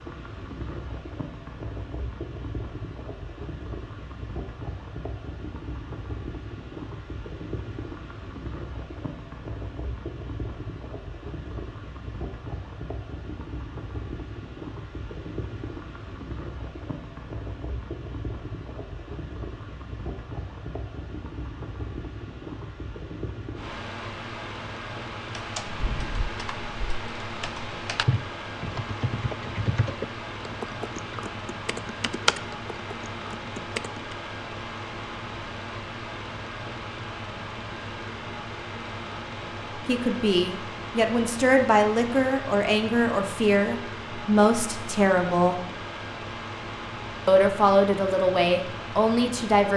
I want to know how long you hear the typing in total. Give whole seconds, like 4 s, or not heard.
9 s.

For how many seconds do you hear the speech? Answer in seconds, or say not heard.
8 s.